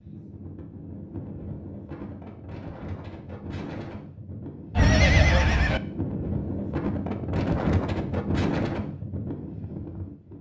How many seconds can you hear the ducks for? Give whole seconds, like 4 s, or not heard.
not heard.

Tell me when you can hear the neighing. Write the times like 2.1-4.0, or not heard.
4.8-5.8.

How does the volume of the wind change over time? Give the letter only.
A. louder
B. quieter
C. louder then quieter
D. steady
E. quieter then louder
A.